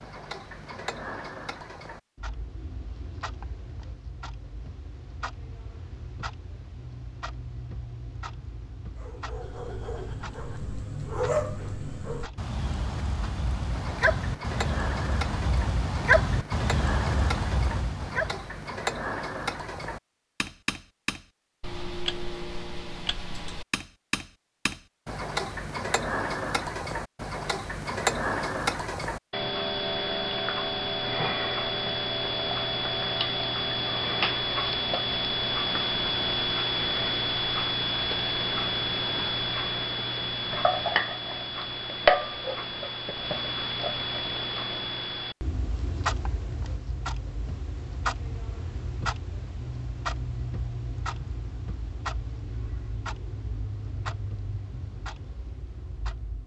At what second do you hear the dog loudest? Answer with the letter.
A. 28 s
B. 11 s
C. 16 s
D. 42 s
C.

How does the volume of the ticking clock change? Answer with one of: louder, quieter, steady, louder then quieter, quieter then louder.
louder then quieter.